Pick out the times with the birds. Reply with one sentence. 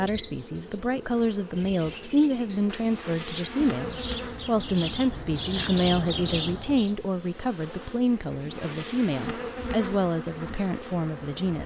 You can hear the birds from 0.0 to 7.0 s.